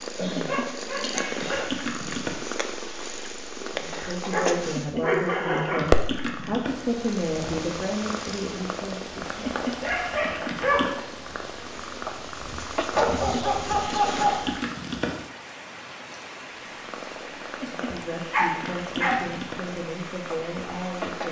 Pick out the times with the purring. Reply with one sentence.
The purring can be heard from 0.0 to 14.6 s and from 16.6 to 21.2 s.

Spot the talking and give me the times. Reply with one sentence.
You can hear the talking from 3.6 to 9.4 s and from 17.6 to 21.2 s.